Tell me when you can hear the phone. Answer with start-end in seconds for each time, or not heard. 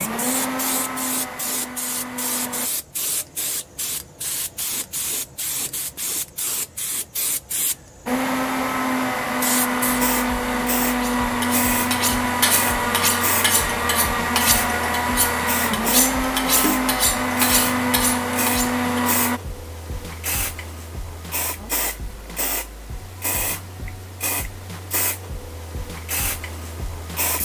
not heard.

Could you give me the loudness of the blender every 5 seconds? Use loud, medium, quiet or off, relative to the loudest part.
medium, loud, loud, loud, off, off.